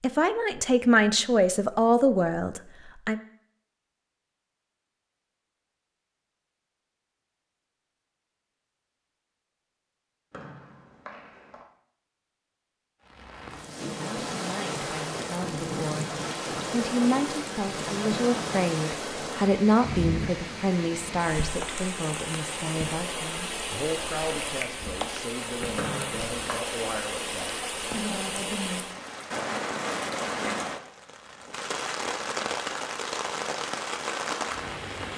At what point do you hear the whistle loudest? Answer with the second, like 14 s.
26 s.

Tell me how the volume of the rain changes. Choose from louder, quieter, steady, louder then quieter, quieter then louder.
steady.